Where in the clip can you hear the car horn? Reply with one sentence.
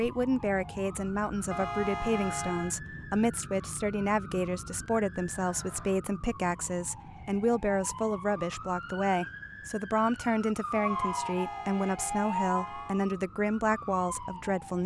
You can hear the car horn from 1.5 to 2.8 s and from 10.7 to 13.1 s.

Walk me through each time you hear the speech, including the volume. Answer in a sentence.
You can hear the speech from 0.0 to 14.8 s, at a steady volume.